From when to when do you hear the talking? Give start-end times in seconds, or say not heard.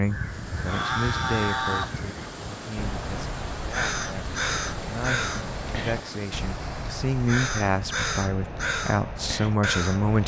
0.0-10.2.